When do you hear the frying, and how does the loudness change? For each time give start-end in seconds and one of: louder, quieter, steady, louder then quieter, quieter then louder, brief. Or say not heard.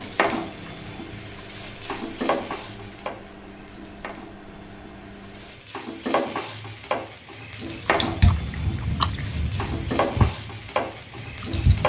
0.0-11.8 quieter then louder.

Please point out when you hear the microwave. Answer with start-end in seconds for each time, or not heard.
0.0-5.7.